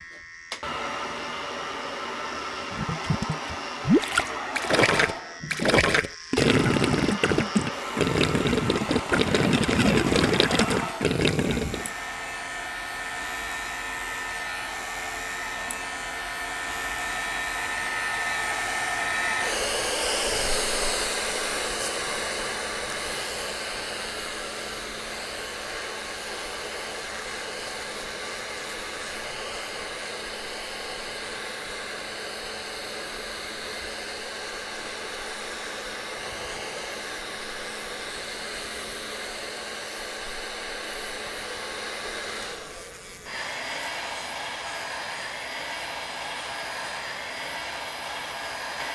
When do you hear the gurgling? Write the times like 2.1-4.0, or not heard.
2.7-11.9.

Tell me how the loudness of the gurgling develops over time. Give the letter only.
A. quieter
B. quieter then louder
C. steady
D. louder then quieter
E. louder
C.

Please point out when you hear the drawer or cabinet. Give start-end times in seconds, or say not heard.
not heard.